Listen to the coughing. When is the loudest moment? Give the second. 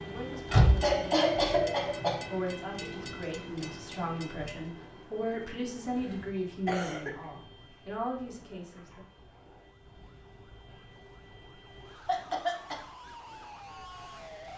1 s.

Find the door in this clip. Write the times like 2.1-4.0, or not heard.
0.5-1.0.